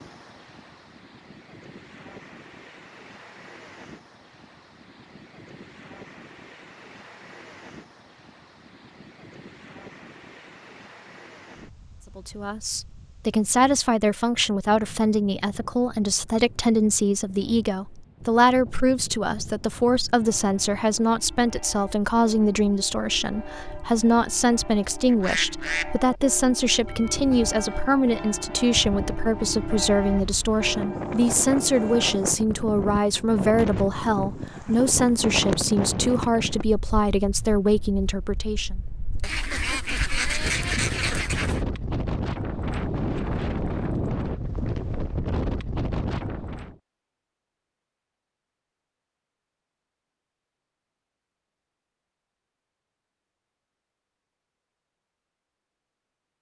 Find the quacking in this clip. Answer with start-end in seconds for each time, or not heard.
25.1-25.9, 39.2-41.6.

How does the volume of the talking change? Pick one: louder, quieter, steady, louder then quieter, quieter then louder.
steady.